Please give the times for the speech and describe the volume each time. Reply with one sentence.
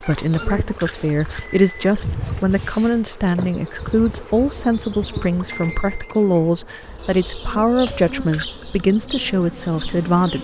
The speech can be heard from 0.0 to 10.3 s, at a steady volume.